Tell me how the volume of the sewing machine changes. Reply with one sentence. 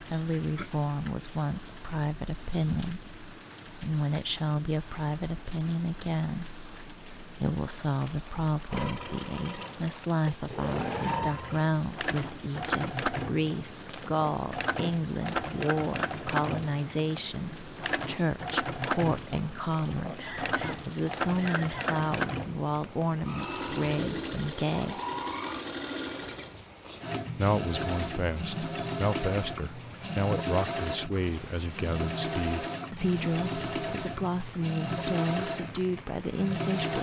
The loudness of the sewing machine stays about the same.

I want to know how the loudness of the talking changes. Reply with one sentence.
The loudness of the talking stays about the same.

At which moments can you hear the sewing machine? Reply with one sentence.
You can hear the sewing machine from 8.7 to 36.9 s.